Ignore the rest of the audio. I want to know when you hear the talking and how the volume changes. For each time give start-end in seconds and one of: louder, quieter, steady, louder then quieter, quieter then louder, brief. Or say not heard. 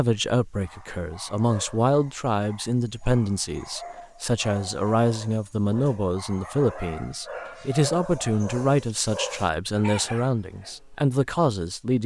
0.0-12.0 steady.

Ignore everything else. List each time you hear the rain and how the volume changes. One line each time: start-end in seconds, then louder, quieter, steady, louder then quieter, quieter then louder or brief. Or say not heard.
not heard.